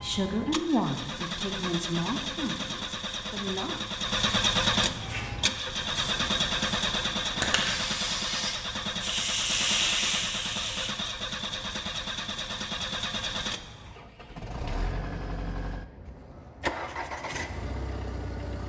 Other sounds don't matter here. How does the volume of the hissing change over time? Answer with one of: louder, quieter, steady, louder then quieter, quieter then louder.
louder.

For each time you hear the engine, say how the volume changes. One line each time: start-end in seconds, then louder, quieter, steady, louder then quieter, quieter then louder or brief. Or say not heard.
0.0-18.6 louder then quieter.